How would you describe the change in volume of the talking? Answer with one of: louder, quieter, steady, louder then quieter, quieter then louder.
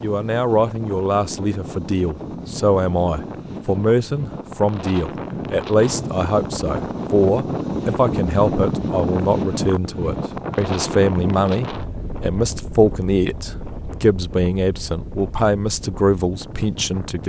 steady.